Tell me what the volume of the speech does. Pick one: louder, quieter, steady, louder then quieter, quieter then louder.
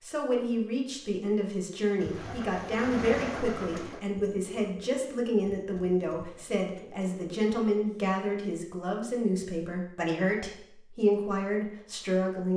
steady.